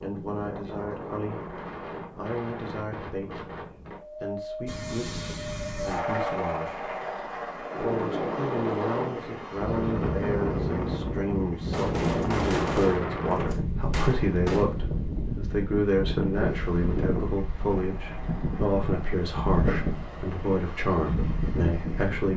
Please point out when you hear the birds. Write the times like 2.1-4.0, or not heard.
not heard.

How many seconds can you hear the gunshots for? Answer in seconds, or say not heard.
3 s.